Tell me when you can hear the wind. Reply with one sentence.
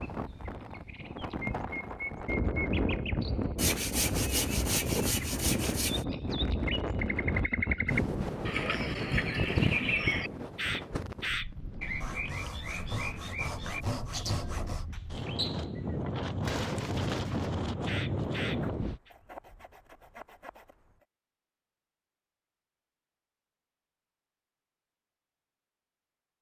The wind can be heard from 0.0 to 19.0 s.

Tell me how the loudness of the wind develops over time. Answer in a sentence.
The volume of the wind goes down, then up.